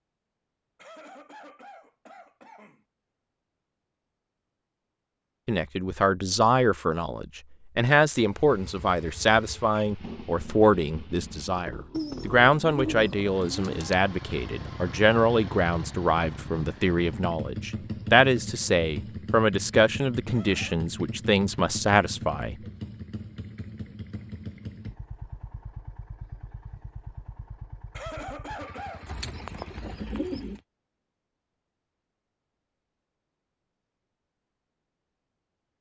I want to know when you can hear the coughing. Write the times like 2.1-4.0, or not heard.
0.8-2.9, 20.2-20.9, 27.9-29.1.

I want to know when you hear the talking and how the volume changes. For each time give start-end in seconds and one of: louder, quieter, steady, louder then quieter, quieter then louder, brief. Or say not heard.
5.5-22.6 steady.